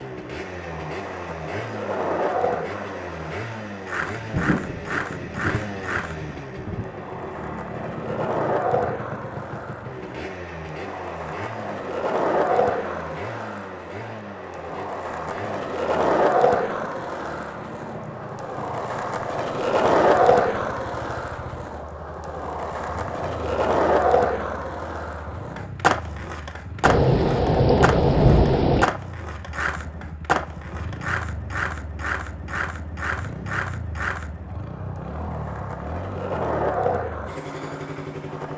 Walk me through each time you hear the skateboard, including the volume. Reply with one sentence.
You can hear the skateboard from 0.0 to 38.5 s, getting louder then quieter.